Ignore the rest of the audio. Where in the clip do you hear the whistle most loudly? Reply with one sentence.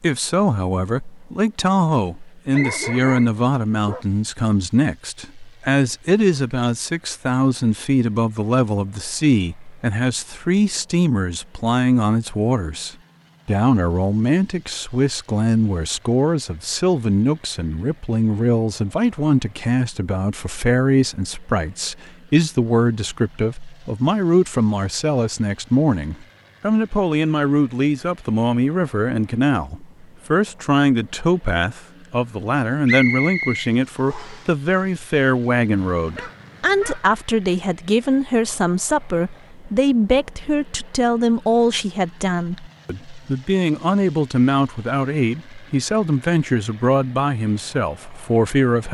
The volume of the whistle peaks at 33 seconds.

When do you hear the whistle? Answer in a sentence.
You can hear the whistle from 2.5 to 3.3 s and from 32.9 to 34.5 s.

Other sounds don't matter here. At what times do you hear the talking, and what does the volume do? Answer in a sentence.
You can hear the talking from 0.0 to 48.8 s, at a steady volume.